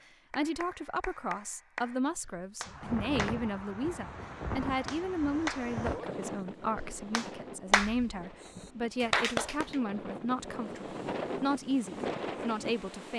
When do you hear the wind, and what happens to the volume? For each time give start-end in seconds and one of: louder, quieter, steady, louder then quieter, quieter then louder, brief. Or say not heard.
2.6-13.1 quieter then louder.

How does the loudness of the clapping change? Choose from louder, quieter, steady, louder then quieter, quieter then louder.
louder.